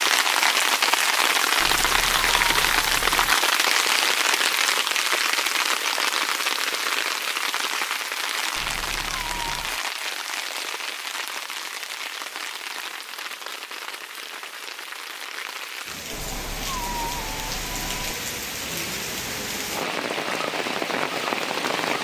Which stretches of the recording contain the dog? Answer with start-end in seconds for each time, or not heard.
not heard.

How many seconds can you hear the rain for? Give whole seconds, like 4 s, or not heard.
22 s.